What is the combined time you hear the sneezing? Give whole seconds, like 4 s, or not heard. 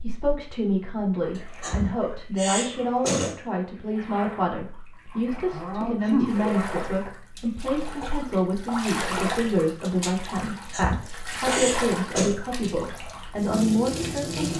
5 s.